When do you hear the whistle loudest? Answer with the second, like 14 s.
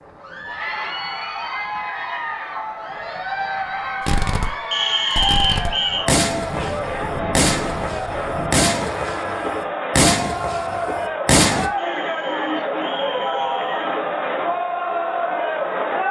5 s.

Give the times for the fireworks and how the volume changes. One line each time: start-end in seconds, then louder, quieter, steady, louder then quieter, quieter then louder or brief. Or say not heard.
4.0-11.7 louder.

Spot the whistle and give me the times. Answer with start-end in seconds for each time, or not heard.
4.7-6.1, 11.8-14.0.